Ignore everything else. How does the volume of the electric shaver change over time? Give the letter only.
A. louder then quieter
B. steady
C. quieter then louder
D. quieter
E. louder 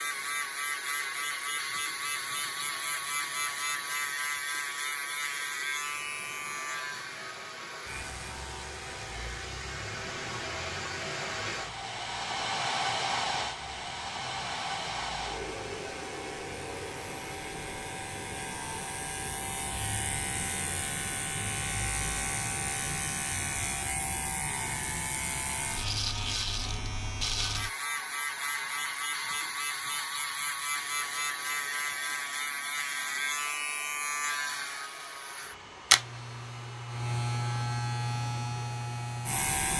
C.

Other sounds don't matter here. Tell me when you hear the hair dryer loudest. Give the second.
13 s.